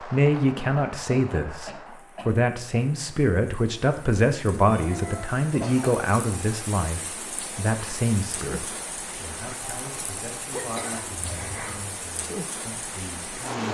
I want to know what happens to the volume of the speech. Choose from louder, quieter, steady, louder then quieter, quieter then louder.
quieter.